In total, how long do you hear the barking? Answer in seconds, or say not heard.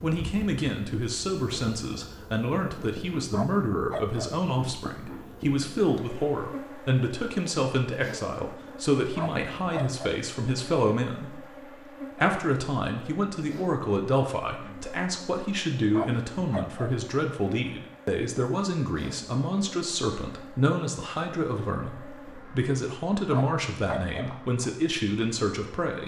4 s.